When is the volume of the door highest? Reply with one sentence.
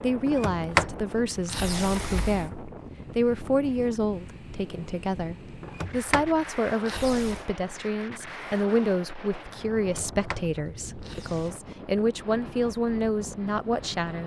The loudest moment of the door is at 1 second.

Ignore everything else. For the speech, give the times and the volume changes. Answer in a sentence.
You can hear the speech from 0.0 to 14.2 s, at a steady volume.